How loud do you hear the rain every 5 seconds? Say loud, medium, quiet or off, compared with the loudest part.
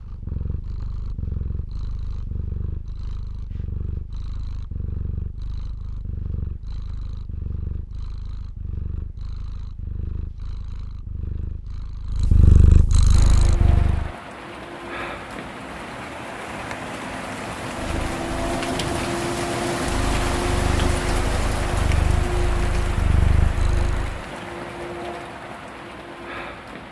off, off, medium, loud, loud, medium.